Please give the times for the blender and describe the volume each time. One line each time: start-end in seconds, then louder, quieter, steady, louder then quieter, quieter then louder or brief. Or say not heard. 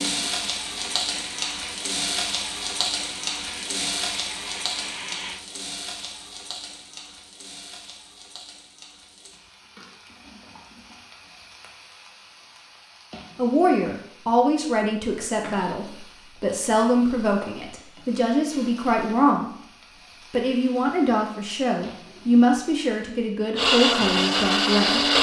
0.1-5.4 steady
23.6-25.1 brief.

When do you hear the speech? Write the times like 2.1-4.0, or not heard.
13.3-19.6, 20.3-25.1.